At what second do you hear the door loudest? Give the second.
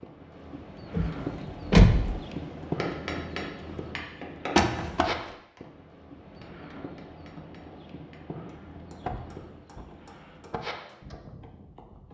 2 s.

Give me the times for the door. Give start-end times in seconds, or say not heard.
0.9-2.1, 4.5-5.1, 9.1-10.6.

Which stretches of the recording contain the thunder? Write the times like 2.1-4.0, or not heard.
not heard.